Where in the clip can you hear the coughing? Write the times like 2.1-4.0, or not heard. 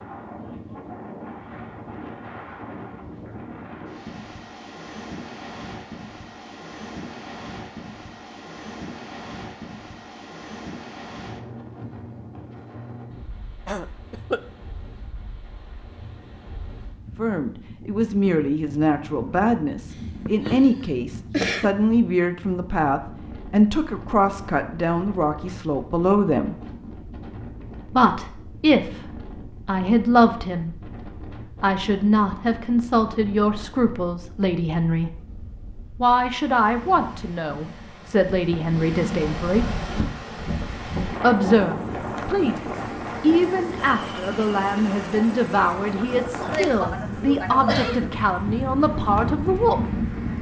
13.7-14.4, 19.9-21.8, 46.4-48.1.